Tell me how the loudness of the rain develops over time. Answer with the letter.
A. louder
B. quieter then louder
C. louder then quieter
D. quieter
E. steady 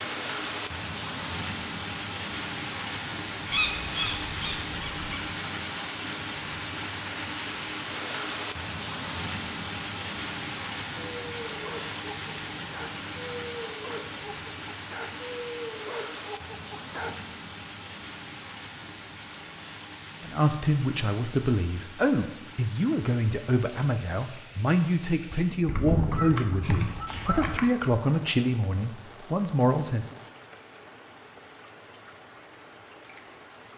D.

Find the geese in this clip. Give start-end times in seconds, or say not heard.
3.5-5.2, 25.6-27.7.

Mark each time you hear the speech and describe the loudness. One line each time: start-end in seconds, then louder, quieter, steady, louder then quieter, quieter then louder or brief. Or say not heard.
20.2-30.1 steady.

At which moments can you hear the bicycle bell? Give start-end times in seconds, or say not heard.
not heard.